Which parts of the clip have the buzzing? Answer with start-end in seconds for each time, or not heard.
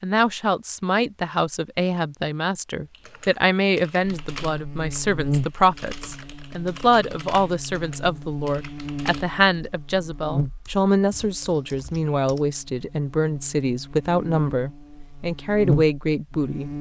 4.0-16.7.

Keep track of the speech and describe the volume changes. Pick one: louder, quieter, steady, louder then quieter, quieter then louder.
steady.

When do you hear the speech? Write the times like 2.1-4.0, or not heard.
0.0-16.7.